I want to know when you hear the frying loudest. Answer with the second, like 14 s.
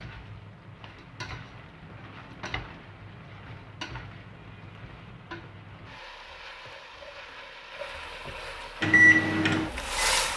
10 s.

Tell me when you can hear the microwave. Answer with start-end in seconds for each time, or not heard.
8.8-10.2.